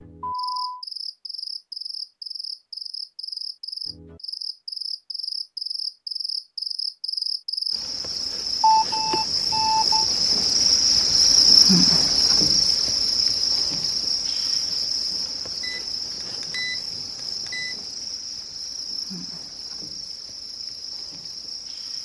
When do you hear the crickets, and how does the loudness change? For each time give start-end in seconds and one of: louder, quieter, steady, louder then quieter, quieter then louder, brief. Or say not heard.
0.0-21.9 louder then quieter.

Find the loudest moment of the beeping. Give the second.
9 s.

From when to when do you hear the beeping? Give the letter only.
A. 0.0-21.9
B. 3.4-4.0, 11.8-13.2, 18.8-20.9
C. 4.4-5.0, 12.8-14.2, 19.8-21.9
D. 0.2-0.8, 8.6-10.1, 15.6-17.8
D.